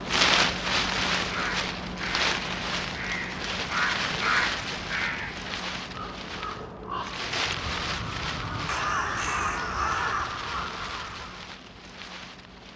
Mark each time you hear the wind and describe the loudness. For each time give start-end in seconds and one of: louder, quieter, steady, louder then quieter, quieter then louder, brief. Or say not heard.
0.0-12.7 quieter.